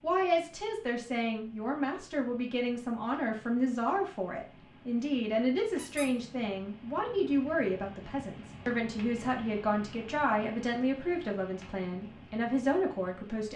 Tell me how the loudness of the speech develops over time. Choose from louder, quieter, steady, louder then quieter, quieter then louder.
steady.